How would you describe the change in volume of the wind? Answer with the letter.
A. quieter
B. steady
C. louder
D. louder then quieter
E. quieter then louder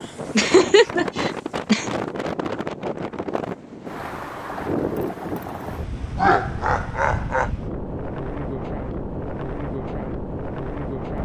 B.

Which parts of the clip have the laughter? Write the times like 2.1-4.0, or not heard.
0.3-1.9, 6.2-7.5.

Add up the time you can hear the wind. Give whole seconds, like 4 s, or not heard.
11 s.